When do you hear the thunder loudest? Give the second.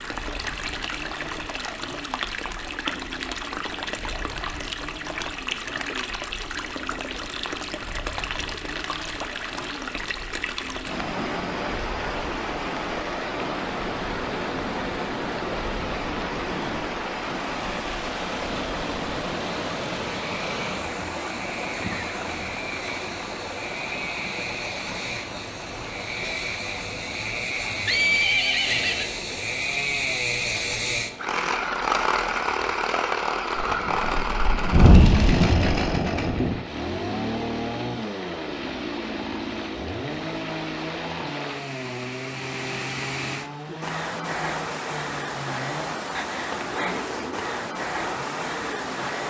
35 s.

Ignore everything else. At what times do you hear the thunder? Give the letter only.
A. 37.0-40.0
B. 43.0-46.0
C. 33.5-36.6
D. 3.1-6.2
C.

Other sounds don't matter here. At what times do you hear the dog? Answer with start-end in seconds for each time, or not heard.
not heard.